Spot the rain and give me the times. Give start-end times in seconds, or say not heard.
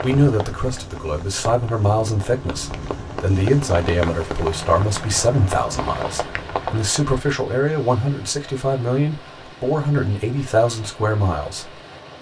0.0-7.2.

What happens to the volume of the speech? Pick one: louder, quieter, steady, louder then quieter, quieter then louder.
steady.